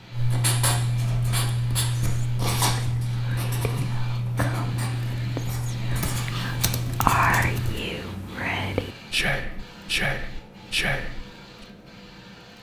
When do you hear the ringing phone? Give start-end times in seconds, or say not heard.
not heard.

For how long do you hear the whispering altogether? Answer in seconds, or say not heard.
10 s.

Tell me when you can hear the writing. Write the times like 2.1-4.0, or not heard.
0.1-7.8.